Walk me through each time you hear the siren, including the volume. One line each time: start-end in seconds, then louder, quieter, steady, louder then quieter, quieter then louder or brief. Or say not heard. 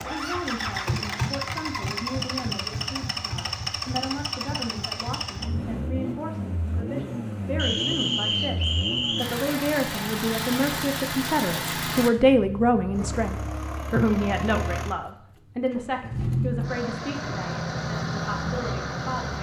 not heard.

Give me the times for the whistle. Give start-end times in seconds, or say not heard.
7.5-9.3.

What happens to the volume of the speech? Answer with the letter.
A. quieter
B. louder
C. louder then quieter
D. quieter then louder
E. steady
C.